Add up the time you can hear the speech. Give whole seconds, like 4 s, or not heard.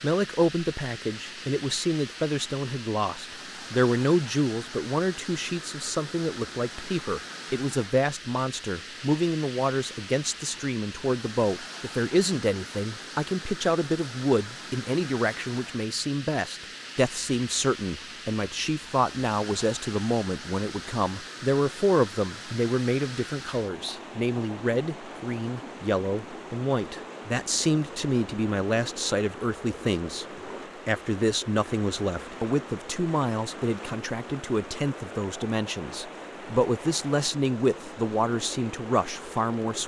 39 s.